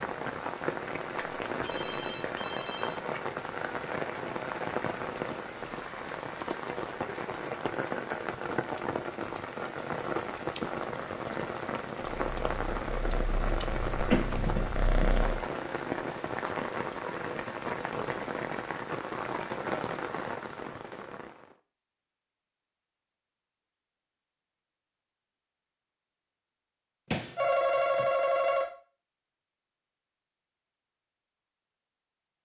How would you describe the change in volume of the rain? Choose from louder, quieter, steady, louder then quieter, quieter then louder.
steady.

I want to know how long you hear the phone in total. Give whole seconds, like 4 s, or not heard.
4 s.